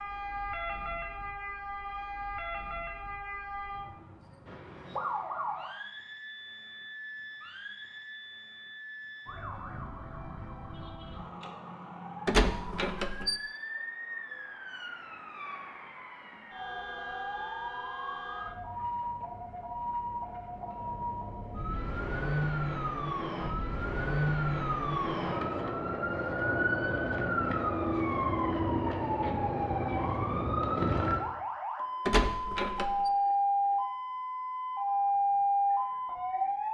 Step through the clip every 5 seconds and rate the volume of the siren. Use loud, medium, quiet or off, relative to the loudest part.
medium, quiet, quiet, medium, medium, loud, loud, loud.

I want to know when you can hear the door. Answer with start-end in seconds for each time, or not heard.
12.2-13.4, 32.0-33.1.